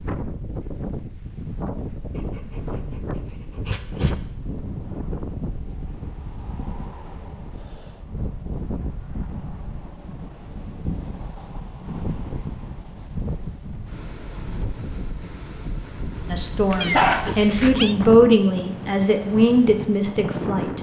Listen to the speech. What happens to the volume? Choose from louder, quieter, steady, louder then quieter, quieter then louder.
louder then quieter.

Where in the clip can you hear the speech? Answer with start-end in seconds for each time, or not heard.
16.3-20.7.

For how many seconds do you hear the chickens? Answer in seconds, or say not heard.
not heard.